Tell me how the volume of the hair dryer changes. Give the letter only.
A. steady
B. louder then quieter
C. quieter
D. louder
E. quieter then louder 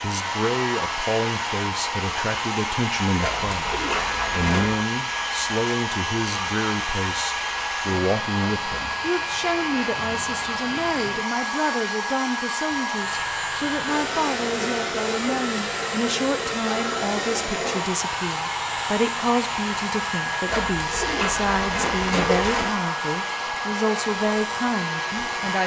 A.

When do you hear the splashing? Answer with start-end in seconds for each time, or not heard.
3.2-4.8, 20.4-22.8.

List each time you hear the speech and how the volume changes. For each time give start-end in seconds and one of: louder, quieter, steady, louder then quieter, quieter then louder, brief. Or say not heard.
0.0-25.6 steady.